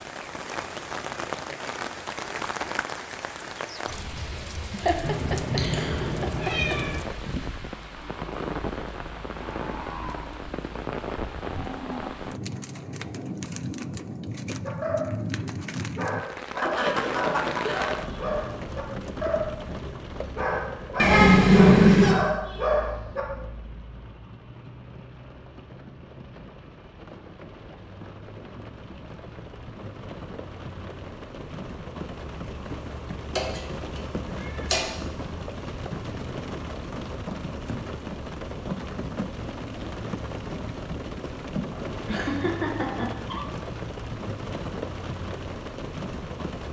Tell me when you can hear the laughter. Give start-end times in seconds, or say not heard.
4.7-6.8, 16.6-18.0, 41.5-43.6.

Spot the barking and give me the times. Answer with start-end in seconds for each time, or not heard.
14.6-23.2.